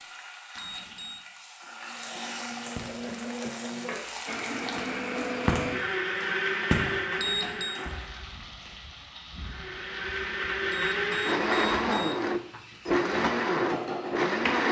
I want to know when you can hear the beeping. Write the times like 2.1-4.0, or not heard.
0.6-1.2, 7.2-7.8, 10.7-12.3.